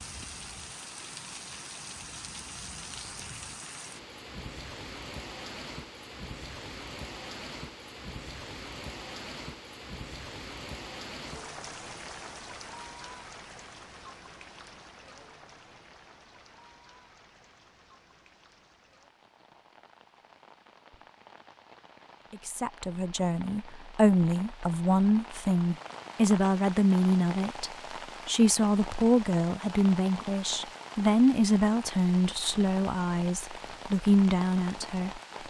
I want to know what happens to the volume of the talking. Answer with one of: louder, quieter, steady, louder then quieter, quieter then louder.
steady.